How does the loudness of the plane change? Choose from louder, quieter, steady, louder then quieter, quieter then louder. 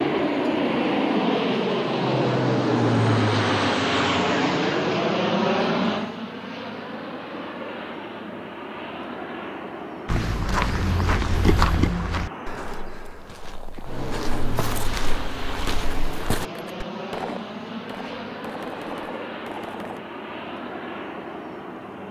quieter.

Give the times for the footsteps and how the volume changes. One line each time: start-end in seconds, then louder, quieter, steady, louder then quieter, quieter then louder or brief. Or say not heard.
10.1-16.9 quieter then louder.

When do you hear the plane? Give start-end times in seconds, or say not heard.
0.0-22.0.